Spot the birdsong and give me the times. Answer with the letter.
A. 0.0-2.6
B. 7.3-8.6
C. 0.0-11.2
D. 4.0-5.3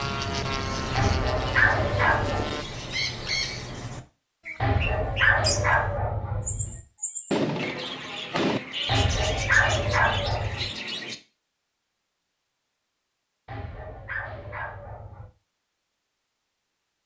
C.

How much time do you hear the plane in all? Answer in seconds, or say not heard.
3 s.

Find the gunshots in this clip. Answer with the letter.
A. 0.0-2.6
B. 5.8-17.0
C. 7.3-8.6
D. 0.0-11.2
C.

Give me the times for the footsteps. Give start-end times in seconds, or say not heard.
not heard.